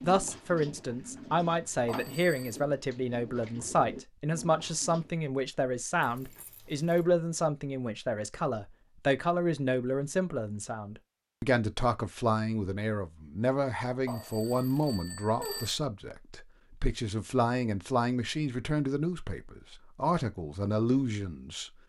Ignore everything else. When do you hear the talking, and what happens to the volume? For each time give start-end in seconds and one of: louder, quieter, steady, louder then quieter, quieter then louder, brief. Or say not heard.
0.0-21.7 steady.